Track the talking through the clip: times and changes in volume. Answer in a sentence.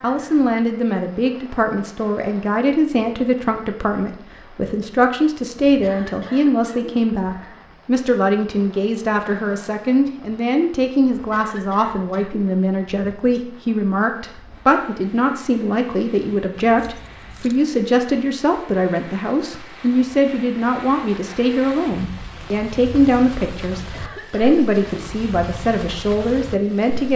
The talking can be heard from 0.0 to 27.1 s, at a steady volume.